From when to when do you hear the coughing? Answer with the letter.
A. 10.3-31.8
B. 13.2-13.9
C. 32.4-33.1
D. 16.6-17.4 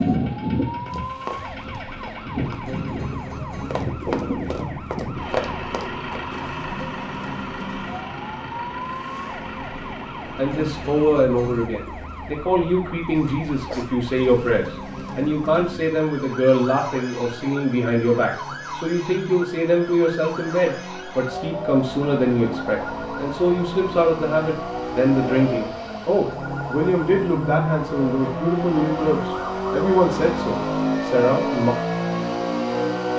B.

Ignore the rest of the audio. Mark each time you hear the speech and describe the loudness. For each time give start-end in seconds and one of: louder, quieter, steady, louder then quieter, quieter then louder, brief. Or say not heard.
10.3-31.8 steady.